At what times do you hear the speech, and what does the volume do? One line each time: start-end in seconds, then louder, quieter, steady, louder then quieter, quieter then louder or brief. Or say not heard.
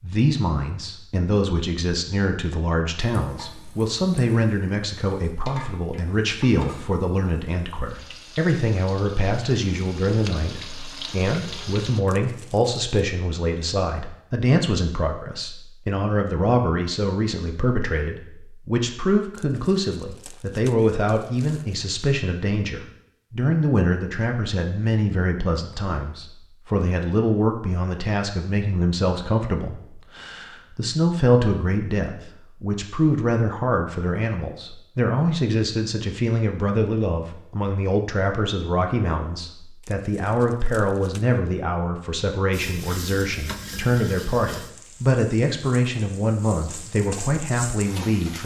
0.0-48.4 steady.